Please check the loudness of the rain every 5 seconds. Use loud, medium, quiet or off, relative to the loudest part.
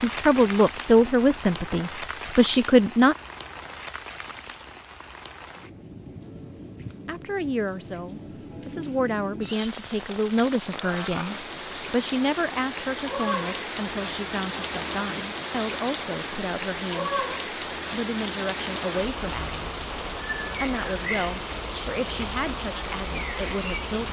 medium, medium, loud, loud, loud.